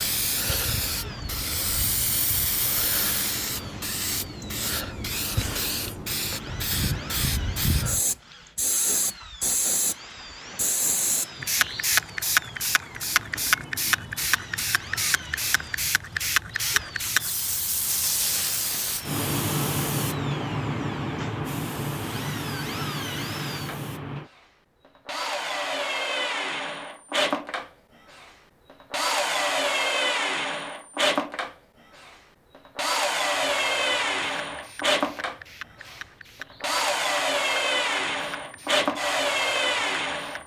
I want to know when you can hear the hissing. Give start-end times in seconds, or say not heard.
0.0-24.3, 33.4-40.4.